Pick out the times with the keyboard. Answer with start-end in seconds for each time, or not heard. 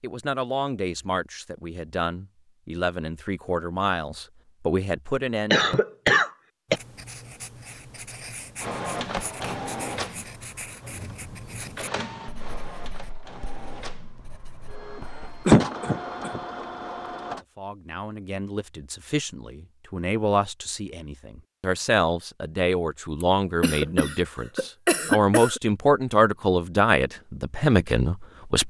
not heard.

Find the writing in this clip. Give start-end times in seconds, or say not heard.
6.7-15.2.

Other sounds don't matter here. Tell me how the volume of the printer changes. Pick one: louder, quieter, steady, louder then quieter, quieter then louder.
quieter then louder.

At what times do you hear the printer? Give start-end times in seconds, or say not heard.
8.6-17.4.